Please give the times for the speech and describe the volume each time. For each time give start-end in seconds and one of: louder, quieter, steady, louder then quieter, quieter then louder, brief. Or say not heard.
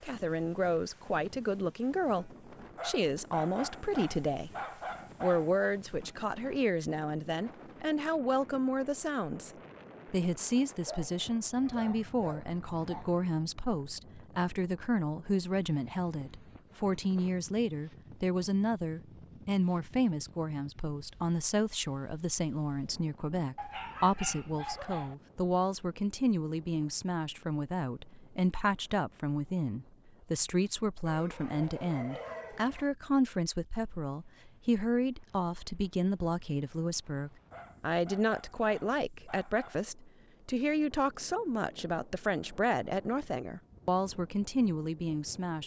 0.0-4.5 steady
5.2-45.6 steady.